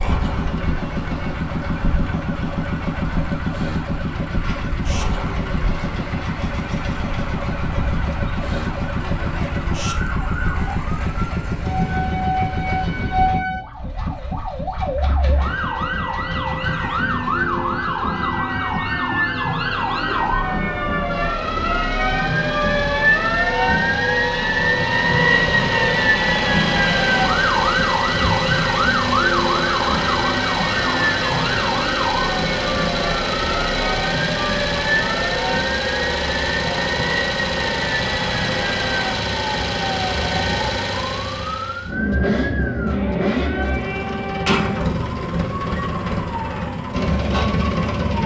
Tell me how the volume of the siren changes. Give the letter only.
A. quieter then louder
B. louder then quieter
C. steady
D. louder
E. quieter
B.